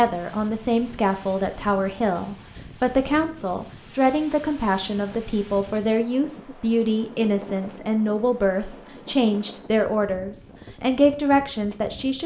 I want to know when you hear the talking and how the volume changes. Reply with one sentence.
The talking can be heard from 0.0 to 12.2 s, at a steady volume.